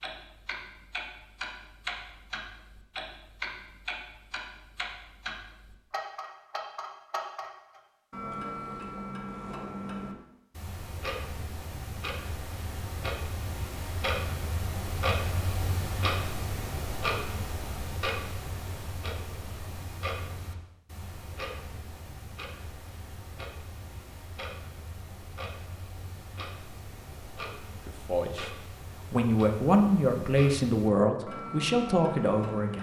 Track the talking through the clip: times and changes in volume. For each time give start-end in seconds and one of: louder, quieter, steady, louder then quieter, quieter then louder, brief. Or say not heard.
27.9-32.7 louder.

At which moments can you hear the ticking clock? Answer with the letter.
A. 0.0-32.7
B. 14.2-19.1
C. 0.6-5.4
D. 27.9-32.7
A.